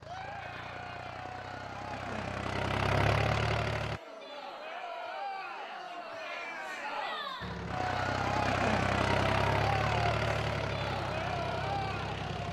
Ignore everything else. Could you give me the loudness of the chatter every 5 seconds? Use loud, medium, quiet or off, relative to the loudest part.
medium, loud, loud.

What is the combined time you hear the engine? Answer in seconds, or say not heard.
9 s.